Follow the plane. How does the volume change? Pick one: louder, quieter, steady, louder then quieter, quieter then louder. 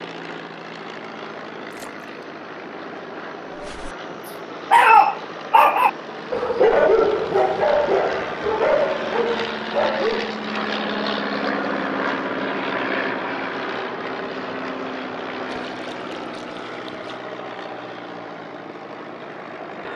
louder then quieter.